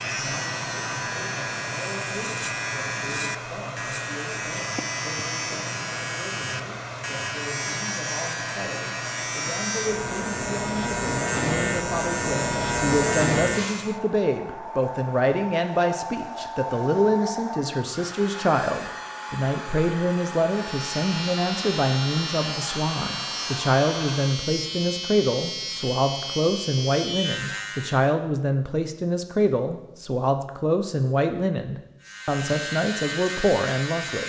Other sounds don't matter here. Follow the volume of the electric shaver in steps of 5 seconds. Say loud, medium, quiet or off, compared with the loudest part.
medium, medium, loud, off, medium, medium, medium.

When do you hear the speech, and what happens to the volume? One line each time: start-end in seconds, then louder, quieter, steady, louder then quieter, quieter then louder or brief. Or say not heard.
0.1-34.2 louder.